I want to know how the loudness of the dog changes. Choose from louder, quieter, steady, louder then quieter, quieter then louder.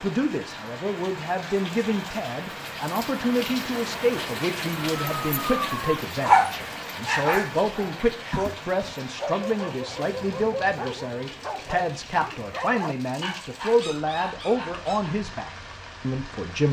quieter.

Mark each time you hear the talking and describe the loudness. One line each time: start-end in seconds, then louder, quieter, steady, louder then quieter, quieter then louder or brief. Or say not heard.
0.0-16.6 steady.